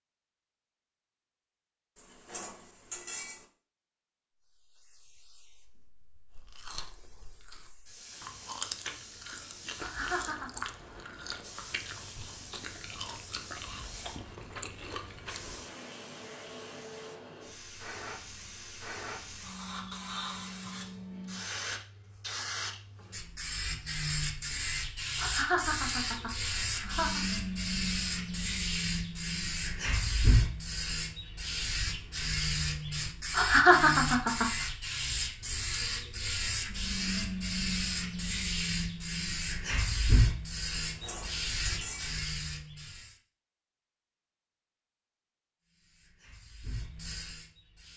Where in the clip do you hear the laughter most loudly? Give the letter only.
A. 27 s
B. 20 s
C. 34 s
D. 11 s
C.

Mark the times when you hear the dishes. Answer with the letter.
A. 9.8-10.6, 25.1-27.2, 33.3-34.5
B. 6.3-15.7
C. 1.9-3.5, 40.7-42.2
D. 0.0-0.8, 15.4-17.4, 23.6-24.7
C.